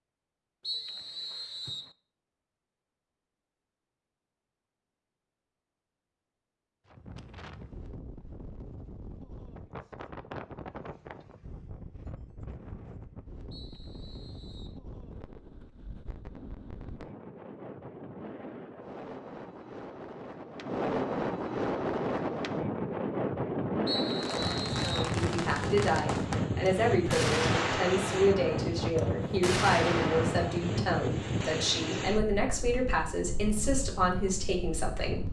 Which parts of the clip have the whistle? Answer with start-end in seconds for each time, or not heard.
0.6-1.9, 13.5-14.8, 23.9-25.1.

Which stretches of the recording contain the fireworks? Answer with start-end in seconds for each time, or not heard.
24.1-30.6.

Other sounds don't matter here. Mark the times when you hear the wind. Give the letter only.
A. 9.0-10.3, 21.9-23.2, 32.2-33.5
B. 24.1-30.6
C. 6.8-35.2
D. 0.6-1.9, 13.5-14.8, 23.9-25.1
C.